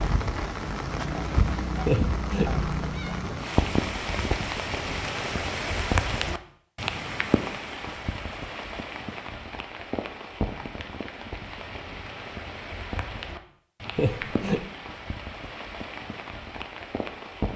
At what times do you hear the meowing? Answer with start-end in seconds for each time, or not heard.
1.9-3.1, 13.9-14.7.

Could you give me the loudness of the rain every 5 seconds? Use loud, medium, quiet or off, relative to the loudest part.
loud, loud, medium, medium.